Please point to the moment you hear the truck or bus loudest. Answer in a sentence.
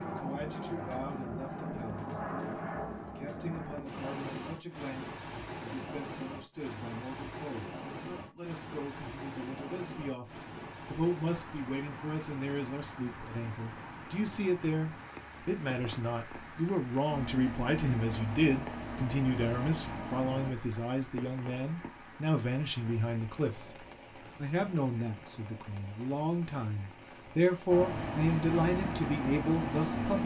The loudest moment of the truck or bus is at 30 seconds.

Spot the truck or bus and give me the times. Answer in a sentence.
The truck or bus can be heard from 17.1 to 20.6 s and from 27.6 to 30.2 s.